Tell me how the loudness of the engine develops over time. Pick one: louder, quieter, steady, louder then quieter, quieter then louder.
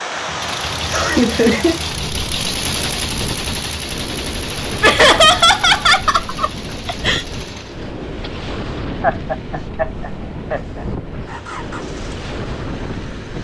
quieter.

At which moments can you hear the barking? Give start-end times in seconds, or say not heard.
not heard.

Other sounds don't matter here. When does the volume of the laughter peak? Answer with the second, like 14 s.
5 s.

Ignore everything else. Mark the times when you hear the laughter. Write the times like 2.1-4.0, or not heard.
0.9-1.8, 4.8-7.2, 9.0-10.8.